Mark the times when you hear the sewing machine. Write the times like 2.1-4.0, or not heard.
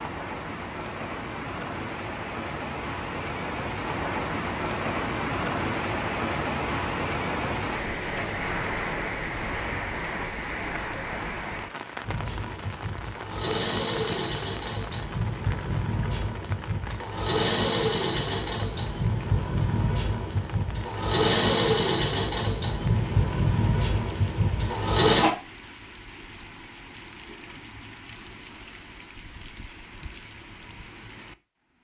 12.0-25.3.